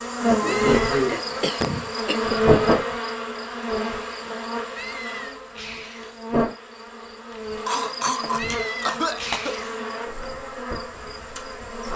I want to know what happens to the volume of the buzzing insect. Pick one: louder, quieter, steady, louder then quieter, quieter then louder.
quieter.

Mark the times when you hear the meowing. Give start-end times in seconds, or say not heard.
0.4-1.0, 4.7-6.2, 8.3-9.8.